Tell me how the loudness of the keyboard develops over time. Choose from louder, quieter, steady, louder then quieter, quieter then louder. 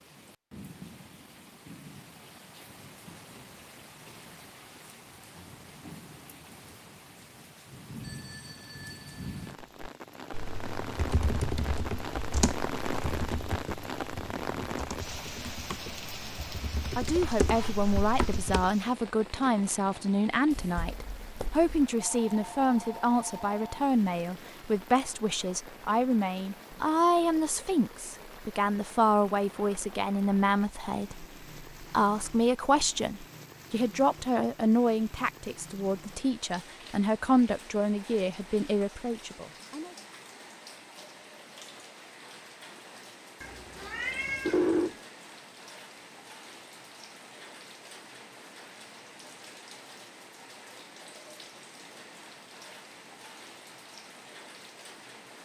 quieter then louder.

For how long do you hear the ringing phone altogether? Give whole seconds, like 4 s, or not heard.
4 s.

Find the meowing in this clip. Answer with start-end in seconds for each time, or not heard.
20.5-21.8, 43.4-44.6.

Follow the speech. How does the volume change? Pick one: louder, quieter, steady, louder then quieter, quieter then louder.
steady.